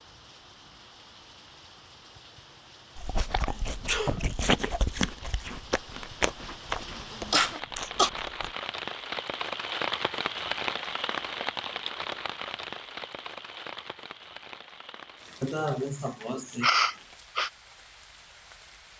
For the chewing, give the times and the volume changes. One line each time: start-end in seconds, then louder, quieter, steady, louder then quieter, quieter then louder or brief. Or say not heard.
3.0-8.6 louder then quieter.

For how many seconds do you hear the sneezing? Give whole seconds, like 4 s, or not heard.
2 s.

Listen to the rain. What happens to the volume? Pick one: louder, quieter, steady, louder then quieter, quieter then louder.
louder then quieter.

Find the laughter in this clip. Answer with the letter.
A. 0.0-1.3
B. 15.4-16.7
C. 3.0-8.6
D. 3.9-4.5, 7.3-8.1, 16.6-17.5
B.